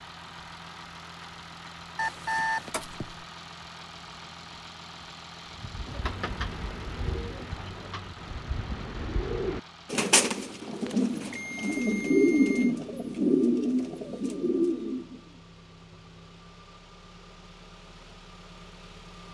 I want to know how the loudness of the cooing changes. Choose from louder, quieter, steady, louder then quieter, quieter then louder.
louder.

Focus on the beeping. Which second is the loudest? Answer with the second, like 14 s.
2 s.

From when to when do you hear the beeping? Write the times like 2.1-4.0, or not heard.
1.9-3.2, 10.9-12.8.